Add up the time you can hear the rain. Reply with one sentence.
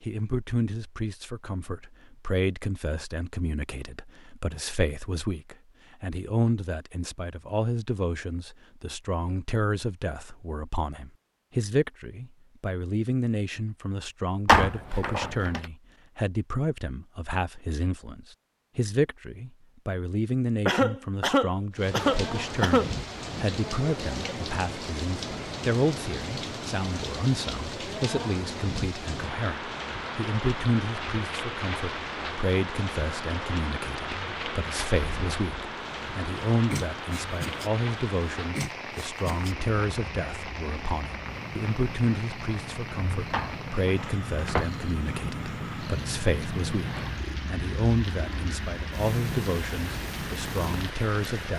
The rain can be heard for 30 seconds in total.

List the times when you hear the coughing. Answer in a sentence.
You can hear the coughing from 20.6 to 22.9 s.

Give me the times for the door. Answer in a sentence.
The door can be heard from 14.4 to 15.6 s and from 43.3 to 44.6 s.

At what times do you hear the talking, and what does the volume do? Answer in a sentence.
The talking can be heard from 0.0 to 51.5 s, at a steady volume.